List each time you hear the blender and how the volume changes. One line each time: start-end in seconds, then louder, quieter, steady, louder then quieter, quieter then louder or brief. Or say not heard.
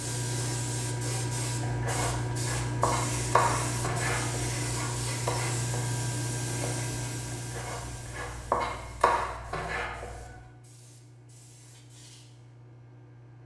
not heard.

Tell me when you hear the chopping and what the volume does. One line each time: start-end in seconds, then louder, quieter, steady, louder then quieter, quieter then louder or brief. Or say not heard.
1.6-10.3 quieter then louder.